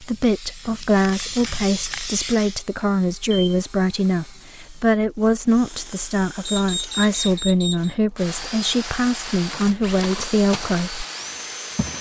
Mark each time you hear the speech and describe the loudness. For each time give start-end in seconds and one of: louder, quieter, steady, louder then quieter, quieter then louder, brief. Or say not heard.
0.0-11.1 steady.